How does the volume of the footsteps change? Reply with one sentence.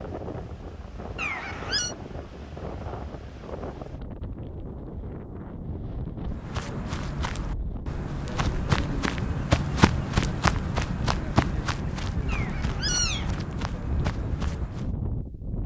The loudness of the footsteps goes up, then down.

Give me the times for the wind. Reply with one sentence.
The wind can be heard from 0.0 to 15.6 s.